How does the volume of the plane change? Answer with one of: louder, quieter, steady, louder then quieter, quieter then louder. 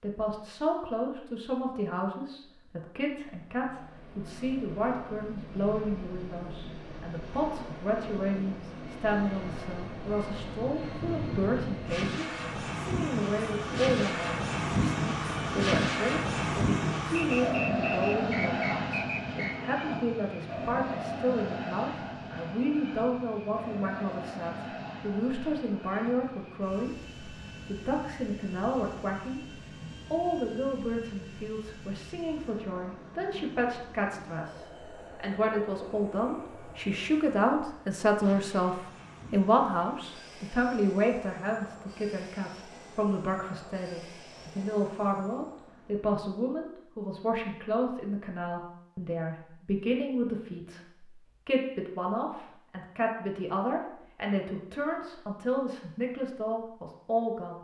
louder then quieter.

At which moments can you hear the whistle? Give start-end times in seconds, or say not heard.
17.1-19.6.